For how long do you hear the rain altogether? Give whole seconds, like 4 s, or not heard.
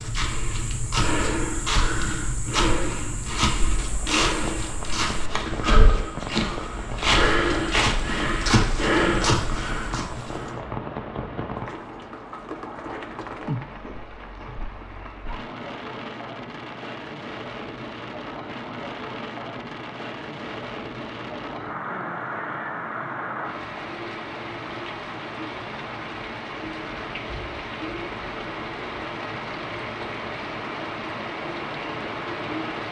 33 s.